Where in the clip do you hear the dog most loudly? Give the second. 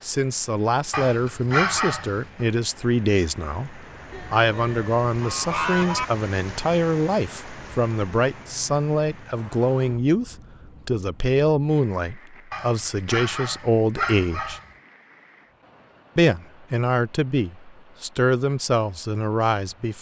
2 s.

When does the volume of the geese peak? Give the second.
6 s.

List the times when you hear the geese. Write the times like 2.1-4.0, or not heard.
4.1-6.0.